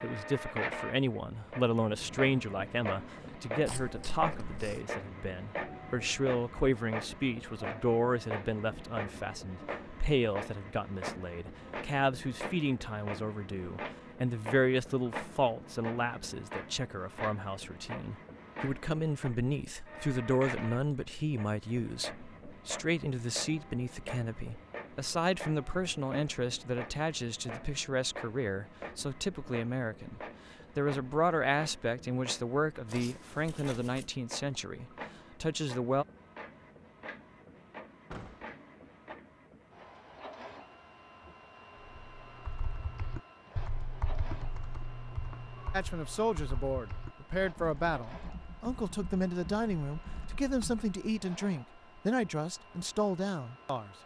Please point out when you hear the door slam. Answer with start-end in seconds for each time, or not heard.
38.1-38.5.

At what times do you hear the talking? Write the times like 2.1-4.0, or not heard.
0.0-36.0, 45.7-54.0.